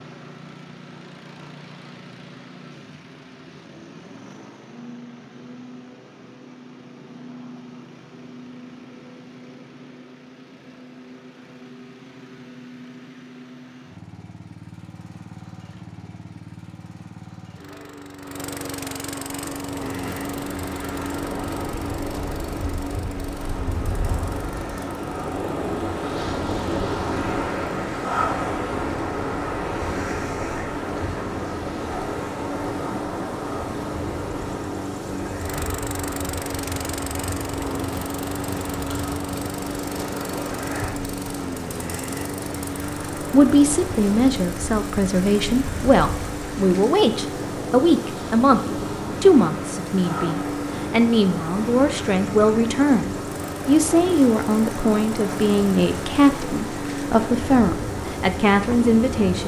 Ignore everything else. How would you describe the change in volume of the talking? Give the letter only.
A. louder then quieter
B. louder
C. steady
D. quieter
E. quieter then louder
C.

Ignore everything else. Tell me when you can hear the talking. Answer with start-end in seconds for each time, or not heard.
43.3-48.6, 49.2-59.4.